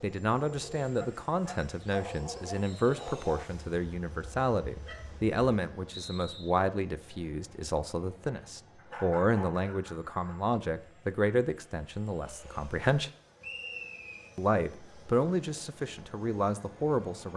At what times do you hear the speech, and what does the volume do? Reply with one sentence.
The speech can be heard from 0.0 to 13.1 s, at a steady volume; and briefly from 14.3 to 17.3 s.